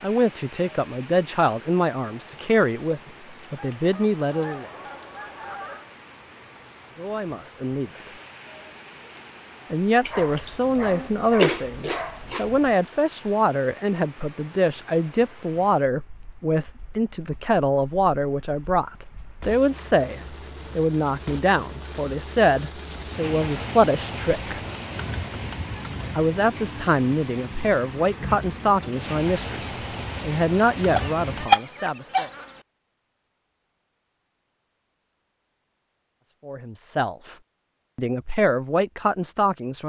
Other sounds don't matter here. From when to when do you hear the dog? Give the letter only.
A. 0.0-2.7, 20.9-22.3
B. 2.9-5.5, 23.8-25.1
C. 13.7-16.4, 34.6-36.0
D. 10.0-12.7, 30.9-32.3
D.